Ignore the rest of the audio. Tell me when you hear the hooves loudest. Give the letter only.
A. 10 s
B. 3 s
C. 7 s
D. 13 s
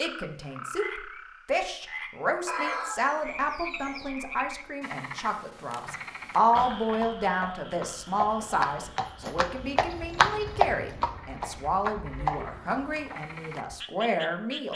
A.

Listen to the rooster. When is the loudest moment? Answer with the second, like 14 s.
3 s.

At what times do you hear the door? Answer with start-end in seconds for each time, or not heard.
not heard.